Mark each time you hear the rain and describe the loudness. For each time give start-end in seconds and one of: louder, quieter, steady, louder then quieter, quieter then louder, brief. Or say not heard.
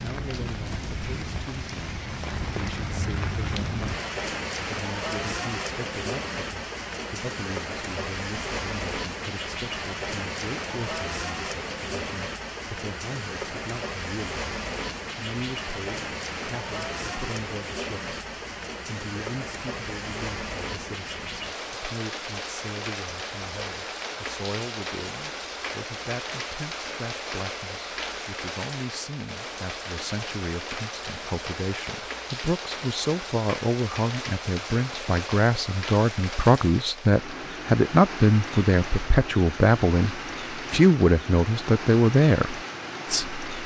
0.0-43.6 steady.